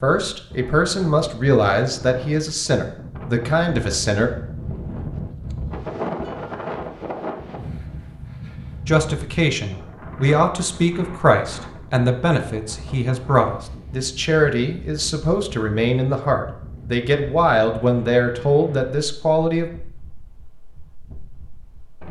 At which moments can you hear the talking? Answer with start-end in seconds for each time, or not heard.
0.0-4.3, 8.8-19.7.